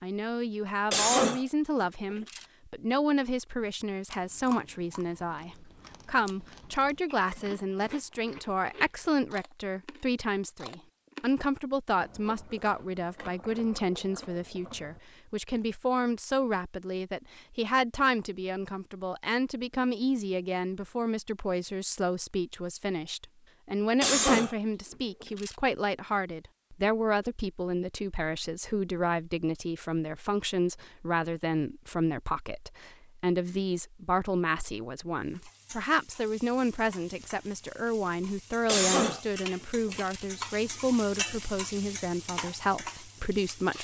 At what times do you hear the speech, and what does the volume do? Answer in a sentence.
You can hear the speech from 0.0 to 43.7 s, at a steady volume.